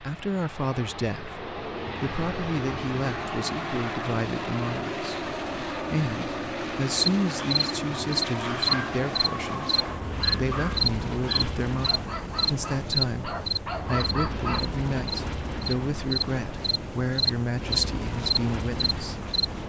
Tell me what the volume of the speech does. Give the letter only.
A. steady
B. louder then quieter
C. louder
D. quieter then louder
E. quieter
A.